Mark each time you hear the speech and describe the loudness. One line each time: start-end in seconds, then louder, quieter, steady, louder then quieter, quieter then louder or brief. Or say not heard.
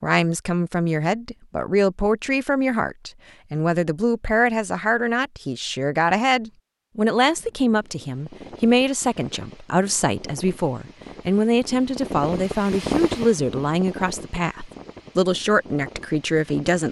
0.0-16.8 steady.